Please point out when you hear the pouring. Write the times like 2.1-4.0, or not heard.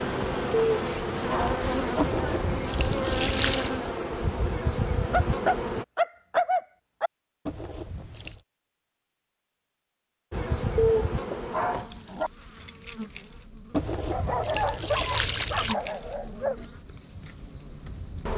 1.9-3.7, 7.5-8.4, 13.7-15.8.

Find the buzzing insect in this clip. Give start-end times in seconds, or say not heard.
0.0-5.8, 10.3-18.3.